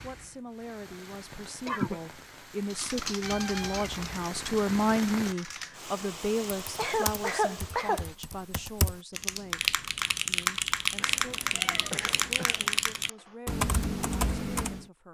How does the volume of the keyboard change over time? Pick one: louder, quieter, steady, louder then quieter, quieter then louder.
louder.